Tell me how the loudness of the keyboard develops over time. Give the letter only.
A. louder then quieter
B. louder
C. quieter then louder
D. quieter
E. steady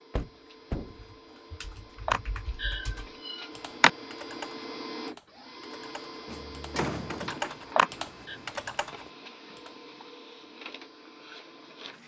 C.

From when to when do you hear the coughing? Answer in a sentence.
The coughing can't be heard in this clip.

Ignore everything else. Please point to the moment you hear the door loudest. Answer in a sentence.
The loudest moment of the door is at 7 seconds.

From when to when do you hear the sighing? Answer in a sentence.
You can hear the sighing from 2.0 to 3.9 s and from 7.8 to 8.3 s.